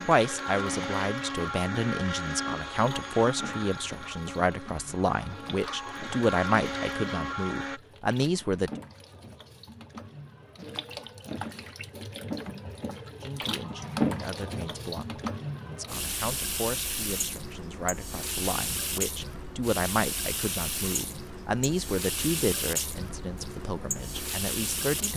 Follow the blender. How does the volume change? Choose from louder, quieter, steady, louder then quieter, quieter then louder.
quieter then louder.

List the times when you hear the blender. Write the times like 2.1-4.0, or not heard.
0.0-7.8.